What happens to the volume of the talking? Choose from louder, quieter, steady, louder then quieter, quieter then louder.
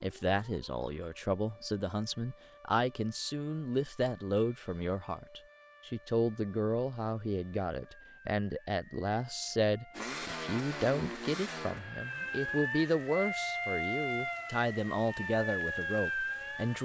steady.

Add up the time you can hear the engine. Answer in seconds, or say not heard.
3 s.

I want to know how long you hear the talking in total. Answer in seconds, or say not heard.
17 s.